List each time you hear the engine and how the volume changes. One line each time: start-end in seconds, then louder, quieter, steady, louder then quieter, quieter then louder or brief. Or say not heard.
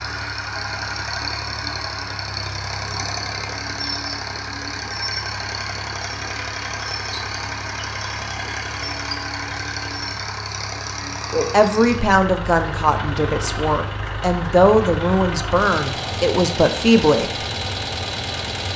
0.0-18.7 steady.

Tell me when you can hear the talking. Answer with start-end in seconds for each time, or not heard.
11.5-17.4.